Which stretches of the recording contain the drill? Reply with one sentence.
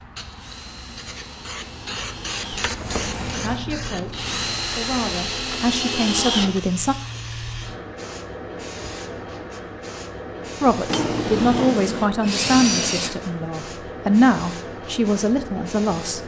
You can hear the drill from 0.2 to 7.8 s and from 10.6 to 13.3 s.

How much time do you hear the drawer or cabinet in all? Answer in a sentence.
You can hear the drawer or cabinet for 2 seconds altogether.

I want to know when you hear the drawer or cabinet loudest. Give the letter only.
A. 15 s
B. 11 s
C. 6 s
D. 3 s
B.